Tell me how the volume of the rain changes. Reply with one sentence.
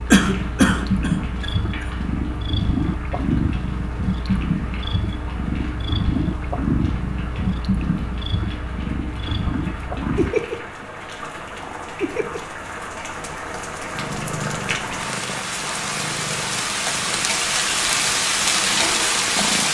The volume of the rain goes up.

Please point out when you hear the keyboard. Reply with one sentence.
You can't hear the keyboard here.